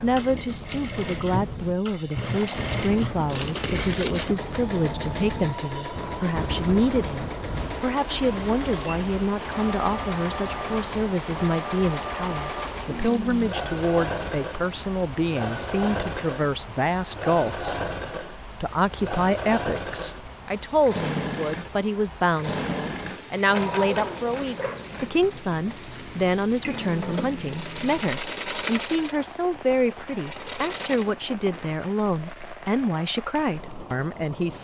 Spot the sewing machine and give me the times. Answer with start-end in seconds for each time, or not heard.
0.0-31.1.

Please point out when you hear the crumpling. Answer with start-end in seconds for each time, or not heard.
3.3-4.3, 11.9-13.6, 25.6-28.1.